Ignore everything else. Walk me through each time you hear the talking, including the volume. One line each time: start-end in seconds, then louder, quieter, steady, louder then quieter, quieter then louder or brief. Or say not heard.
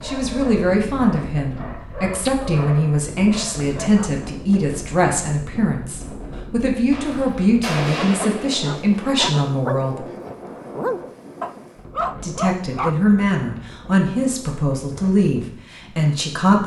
0.0-10.0 steady
12.2-16.6 steady.